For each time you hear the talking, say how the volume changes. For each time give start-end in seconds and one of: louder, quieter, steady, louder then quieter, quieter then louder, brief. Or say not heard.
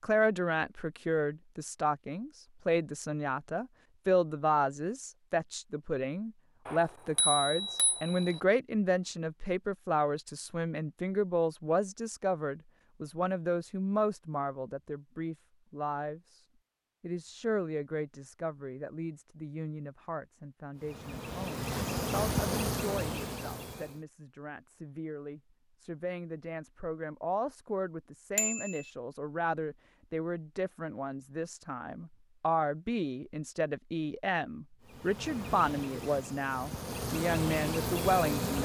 0.0-16.4 steady
17.0-38.6 louder.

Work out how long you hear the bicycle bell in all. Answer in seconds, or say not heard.
2 s.